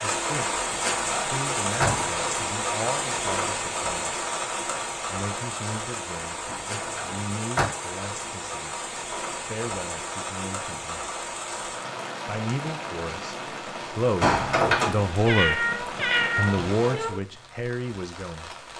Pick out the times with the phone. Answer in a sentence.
You can't hear the phone here.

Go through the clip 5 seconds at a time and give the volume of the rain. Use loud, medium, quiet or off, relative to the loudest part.
loud, medium, medium, medium.